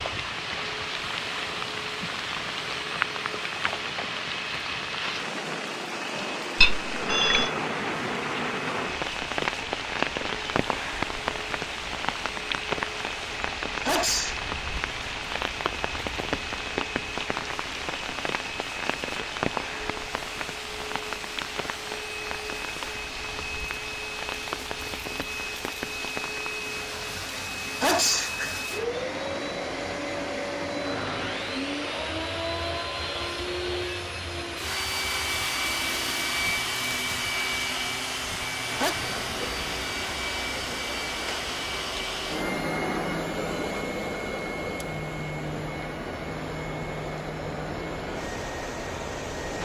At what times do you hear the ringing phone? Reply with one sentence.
You can hear the ringing phone from 6.2 to 7.5 s.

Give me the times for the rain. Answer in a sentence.
The rain can be heard from 0.0 to 49.6 s.